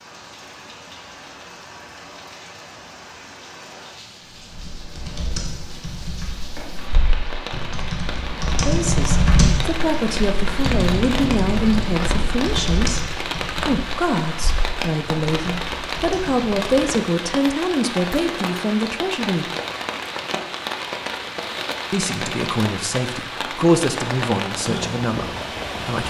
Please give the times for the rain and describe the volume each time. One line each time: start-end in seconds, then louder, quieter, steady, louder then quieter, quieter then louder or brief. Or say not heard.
0.0-26.0 louder.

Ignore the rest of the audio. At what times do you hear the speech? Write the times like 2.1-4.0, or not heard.
8.6-13.1, 13.7-19.5, 21.9-26.0.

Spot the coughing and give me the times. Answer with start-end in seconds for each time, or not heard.
not heard.